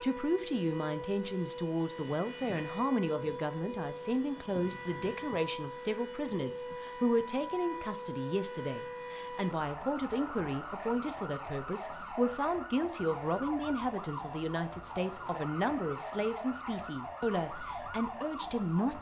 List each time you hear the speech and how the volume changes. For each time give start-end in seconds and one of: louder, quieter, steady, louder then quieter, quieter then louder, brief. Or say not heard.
0.0-18.9 steady.